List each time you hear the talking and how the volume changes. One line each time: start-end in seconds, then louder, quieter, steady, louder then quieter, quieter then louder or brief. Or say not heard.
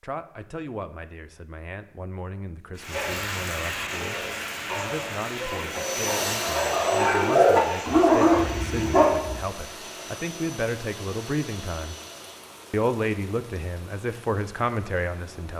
0.0-11.9 louder
12.7-15.5 brief.